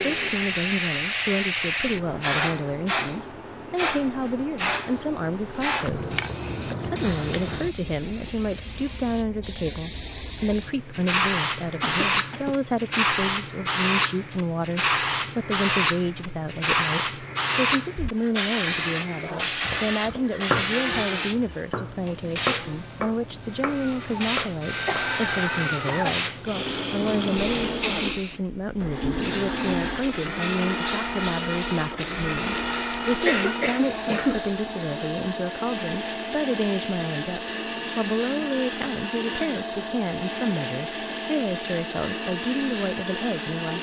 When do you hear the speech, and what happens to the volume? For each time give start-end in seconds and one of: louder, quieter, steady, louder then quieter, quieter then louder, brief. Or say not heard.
0.1-43.7 steady.